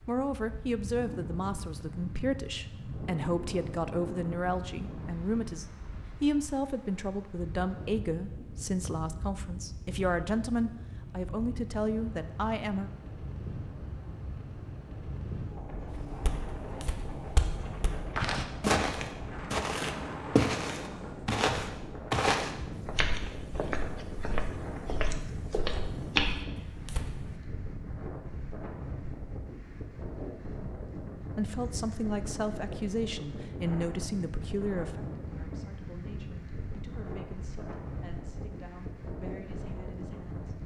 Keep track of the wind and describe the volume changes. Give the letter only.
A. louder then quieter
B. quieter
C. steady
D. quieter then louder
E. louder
C.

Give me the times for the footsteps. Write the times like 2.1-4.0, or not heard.
15.9-27.4.